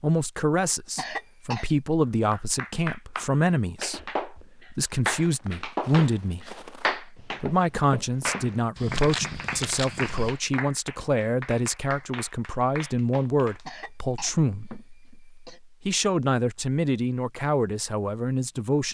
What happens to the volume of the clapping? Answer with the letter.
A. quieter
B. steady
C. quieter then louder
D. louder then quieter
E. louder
A.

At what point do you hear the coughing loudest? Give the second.
1 s.